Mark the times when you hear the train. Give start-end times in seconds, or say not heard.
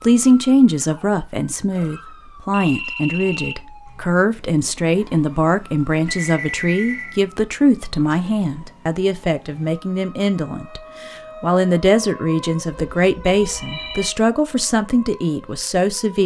not heard.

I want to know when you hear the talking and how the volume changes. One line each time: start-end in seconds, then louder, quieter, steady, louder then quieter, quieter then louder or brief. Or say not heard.
0.0-16.2 steady.